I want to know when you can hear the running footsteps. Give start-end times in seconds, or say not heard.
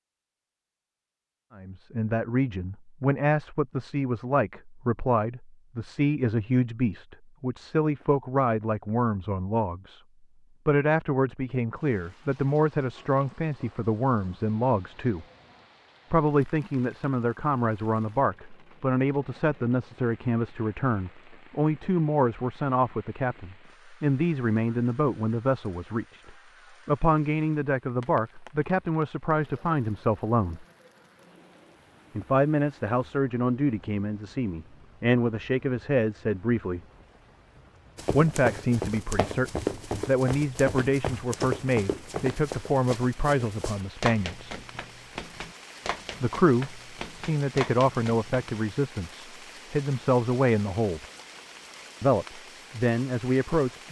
38.0-48.6.